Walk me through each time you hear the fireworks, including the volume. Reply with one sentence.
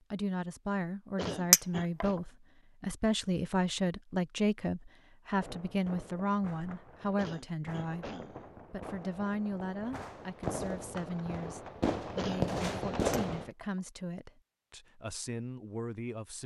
The fireworks can be heard from 5.3 to 13.5 s, getting louder.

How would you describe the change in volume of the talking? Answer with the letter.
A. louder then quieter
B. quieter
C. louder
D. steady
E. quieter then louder
B.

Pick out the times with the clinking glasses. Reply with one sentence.
The clinking glasses can be heard from 1.5 to 2.0 s and from 13.1 to 13.7 s.